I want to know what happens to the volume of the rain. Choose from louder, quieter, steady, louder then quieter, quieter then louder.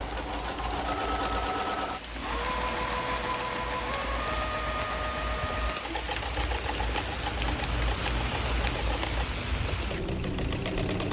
louder.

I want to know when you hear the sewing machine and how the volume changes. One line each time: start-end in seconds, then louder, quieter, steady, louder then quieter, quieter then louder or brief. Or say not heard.
0.0-11.0 quieter.